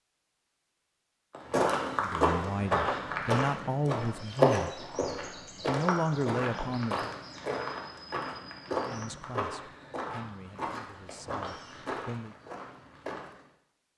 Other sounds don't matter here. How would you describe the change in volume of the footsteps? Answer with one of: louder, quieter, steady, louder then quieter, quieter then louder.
quieter.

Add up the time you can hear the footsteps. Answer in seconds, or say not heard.
12 s.